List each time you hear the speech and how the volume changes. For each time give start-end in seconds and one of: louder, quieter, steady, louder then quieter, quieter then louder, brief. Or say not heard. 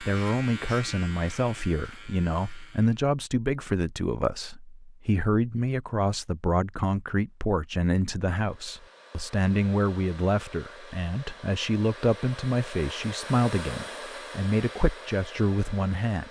0.0-16.2 steady.